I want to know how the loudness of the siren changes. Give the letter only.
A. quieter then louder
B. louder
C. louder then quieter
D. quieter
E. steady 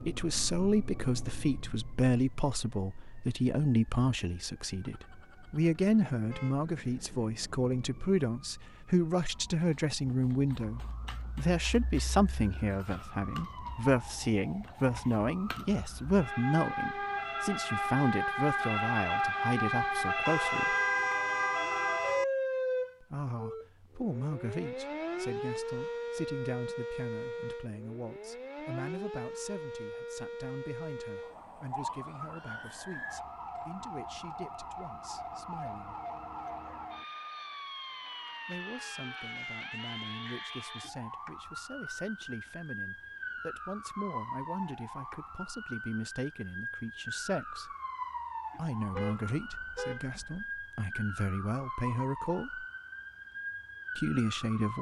C.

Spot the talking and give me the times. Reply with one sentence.
The talking can be heard from 0.1 to 20.8 s, from 23.0 to 36.0 s, from 38.5 to 47.8 s, from 48.5 to 52.6 s and from 54.0 to 54.7 s.